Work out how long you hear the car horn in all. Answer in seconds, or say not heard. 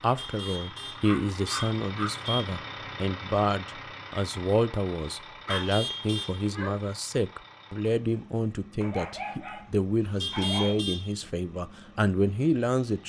4 s.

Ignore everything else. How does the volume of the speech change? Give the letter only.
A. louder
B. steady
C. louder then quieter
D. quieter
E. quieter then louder
B.